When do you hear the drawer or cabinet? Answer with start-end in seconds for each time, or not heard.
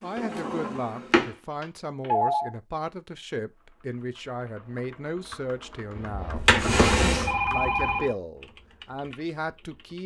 0.1-1.3, 6.3-7.3.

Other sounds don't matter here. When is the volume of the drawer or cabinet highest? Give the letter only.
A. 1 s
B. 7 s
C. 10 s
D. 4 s
B.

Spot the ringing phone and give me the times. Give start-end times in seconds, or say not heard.
1.6-2.5, 6.0-8.2.